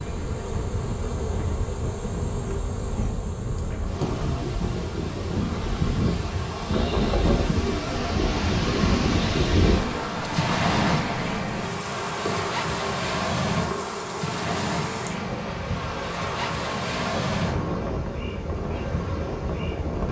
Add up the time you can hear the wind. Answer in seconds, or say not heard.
20 s.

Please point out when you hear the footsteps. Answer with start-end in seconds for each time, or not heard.
not heard.